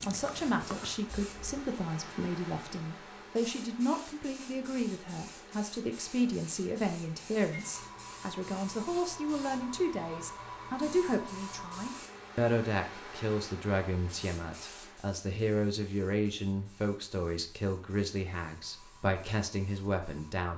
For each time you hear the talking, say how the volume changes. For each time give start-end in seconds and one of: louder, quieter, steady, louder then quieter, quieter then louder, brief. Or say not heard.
0.0-20.5 steady.